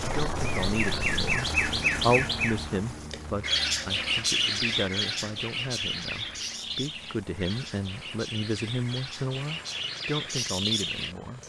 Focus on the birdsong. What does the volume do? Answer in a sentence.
The loudness of the birdsong goes down, then up.